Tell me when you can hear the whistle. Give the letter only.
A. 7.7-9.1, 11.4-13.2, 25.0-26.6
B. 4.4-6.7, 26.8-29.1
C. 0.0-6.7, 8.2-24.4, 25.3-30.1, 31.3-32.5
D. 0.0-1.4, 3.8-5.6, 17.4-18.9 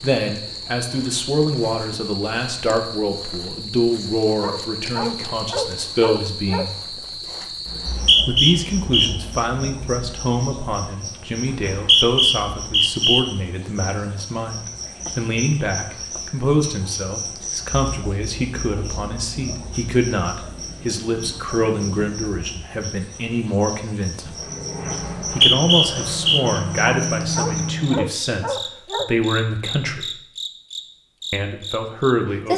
A.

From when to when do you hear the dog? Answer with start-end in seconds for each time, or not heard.
4.4-6.7, 26.8-29.1.